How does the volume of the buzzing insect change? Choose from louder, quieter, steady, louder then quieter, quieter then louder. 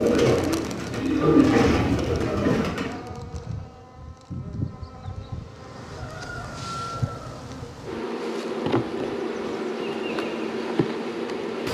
louder.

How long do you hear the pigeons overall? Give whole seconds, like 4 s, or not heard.
3 s.